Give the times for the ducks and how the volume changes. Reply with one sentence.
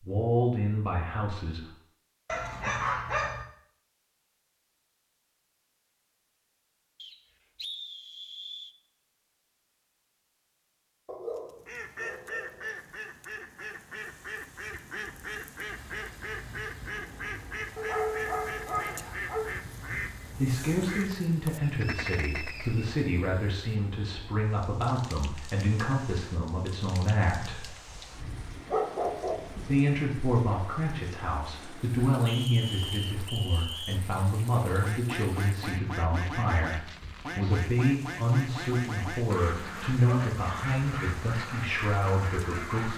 You can hear the ducks from 11.3 to 22.7 s, at a steady volume; and from 34.8 to 42.9 s, at a steady volume.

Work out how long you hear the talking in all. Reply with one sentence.
The talking can be heard for 22 seconds in total.